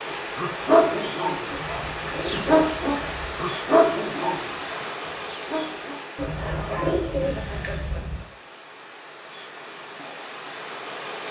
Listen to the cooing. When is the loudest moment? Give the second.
7 s.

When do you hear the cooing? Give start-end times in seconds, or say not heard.
1.5-3.5, 6.2-8.2.